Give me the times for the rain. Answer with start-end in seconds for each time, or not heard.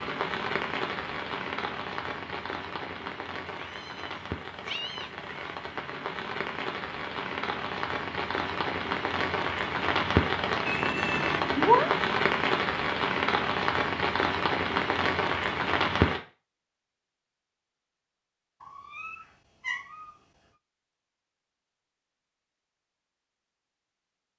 0.0-16.2.